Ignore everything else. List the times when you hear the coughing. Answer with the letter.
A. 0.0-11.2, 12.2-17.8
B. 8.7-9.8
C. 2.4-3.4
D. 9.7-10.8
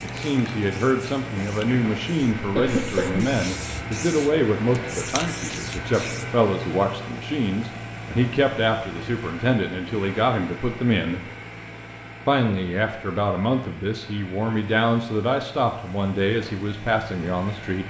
C.